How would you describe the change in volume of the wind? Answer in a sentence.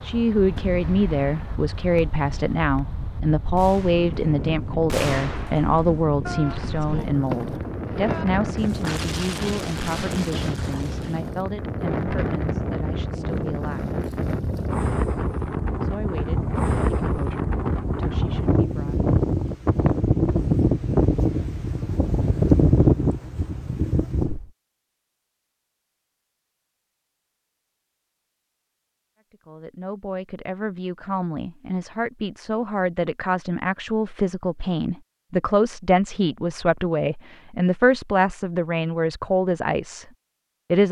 The volume of the wind goes up.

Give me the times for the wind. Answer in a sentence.
You can hear the wind from 0.0 to 24.5 s.